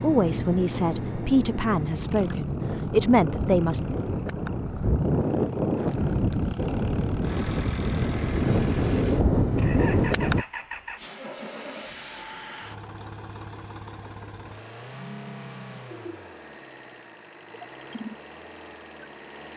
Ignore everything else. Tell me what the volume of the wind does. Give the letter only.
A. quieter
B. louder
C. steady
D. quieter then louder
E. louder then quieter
B.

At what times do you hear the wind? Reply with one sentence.
You can hear the wind from 0.1 to 10.4 s.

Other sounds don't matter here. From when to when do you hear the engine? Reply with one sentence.
The engine can be heard from 0.0 to 19.5 s.